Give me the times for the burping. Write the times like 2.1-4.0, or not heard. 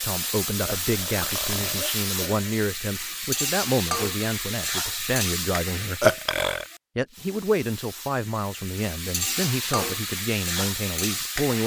0.7-2.5, 6.0-6.7.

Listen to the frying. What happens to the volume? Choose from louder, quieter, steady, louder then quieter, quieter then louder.
quieter then louder.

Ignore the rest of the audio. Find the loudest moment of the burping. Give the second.
6 s.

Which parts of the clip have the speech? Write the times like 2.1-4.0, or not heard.
0.0-6.1, 7.0-11.6.